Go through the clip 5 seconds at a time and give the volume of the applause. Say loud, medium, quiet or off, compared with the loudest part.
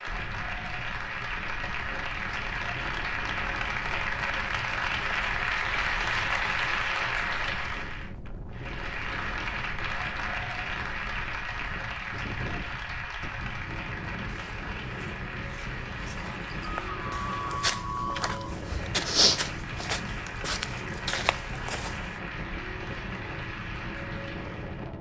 loud, loud, medium, medium, medium.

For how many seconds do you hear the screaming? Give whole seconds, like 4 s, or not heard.
2 s.